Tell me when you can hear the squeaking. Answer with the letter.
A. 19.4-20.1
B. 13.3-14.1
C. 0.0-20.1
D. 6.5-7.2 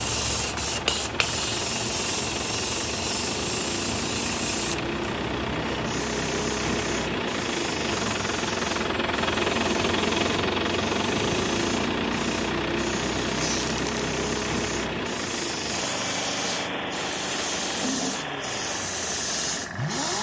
B.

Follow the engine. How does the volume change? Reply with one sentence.
The loudness of the engine goes up, then down.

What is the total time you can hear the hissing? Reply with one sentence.
The hissing can be heard for 20 seconds in total.